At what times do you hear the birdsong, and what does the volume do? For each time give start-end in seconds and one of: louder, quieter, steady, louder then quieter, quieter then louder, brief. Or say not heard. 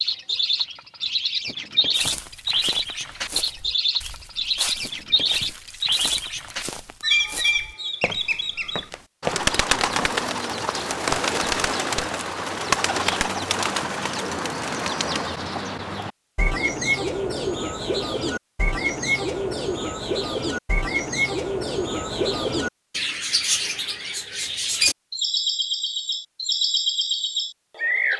0.0-28.1 steady.